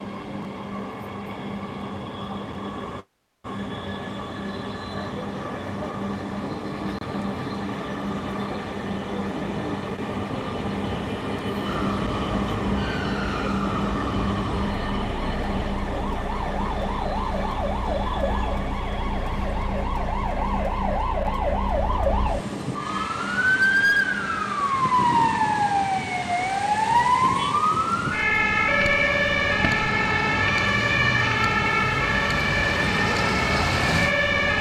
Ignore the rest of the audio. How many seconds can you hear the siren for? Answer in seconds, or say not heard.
23 s.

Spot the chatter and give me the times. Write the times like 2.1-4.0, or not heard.
not heard.